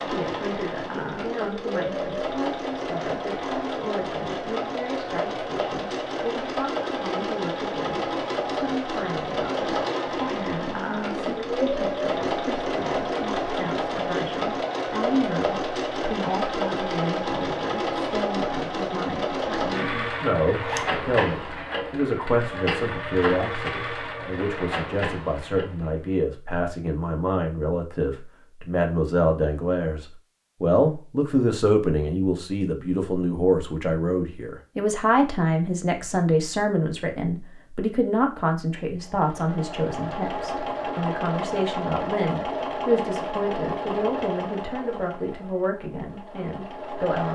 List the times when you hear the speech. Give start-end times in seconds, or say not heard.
0.0-47.2.